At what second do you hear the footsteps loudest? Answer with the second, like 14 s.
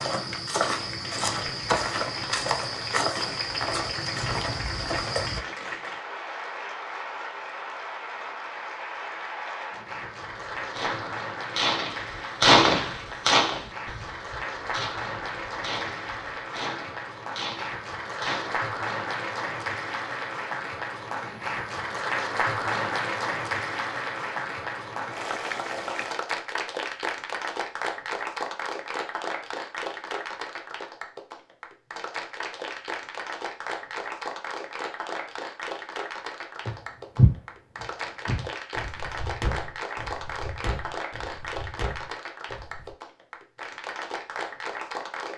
37 s.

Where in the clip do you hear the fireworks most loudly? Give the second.
13 s.